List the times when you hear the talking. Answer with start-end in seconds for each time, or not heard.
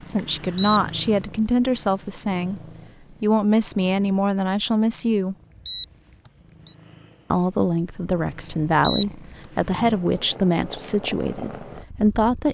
0.1-2.6, 3.2-5.3, 7.3-12.4.